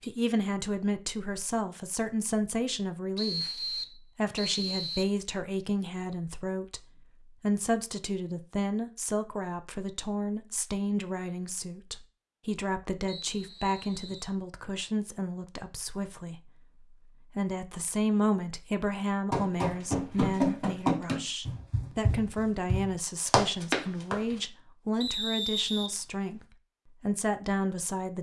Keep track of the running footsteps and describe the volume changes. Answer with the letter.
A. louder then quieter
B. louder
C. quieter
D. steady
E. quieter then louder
E.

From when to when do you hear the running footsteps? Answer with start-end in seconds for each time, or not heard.
19.3-24.4.